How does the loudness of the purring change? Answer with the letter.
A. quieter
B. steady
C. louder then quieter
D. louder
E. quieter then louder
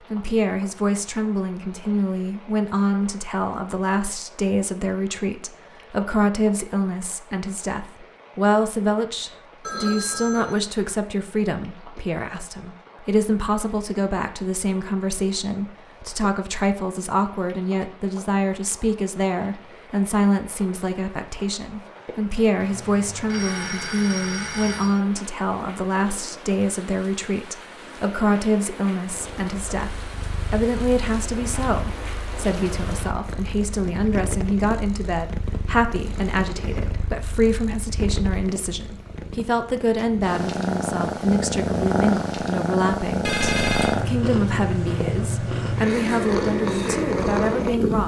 D.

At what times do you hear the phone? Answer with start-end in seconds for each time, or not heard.
9.6-10.7, 22.6-25.0, 43.2-44.0.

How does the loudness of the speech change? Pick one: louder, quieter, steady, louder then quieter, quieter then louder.
steady.